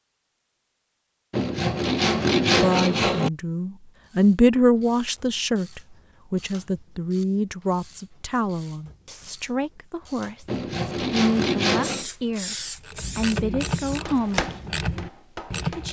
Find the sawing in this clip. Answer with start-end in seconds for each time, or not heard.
1.3-3.3, 10.4-12.1.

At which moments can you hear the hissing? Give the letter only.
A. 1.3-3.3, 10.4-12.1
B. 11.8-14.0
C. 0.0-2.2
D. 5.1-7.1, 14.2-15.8
B.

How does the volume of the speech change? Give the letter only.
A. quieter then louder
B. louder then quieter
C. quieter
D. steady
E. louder
C.